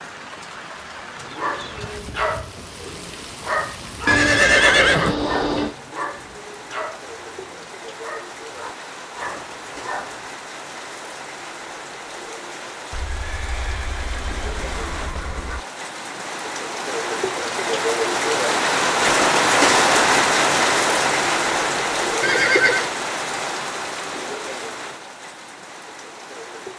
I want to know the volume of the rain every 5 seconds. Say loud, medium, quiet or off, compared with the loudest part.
quiet, quiet, quiet, loud, loud, quiet.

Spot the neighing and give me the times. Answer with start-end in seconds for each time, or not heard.
4.0-5.8, 12.9-15.7, 22.2-22.9.